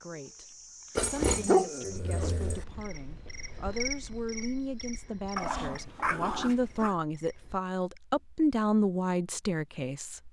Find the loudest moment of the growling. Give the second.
1 s.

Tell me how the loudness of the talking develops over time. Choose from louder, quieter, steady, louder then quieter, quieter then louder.
louder.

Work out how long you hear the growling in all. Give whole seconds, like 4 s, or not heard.
3 s.